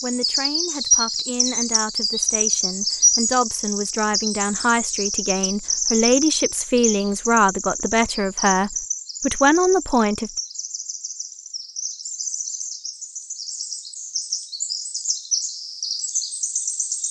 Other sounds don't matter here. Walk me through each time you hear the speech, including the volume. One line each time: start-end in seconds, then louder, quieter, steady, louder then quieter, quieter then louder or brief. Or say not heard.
0.0-10.3 louder.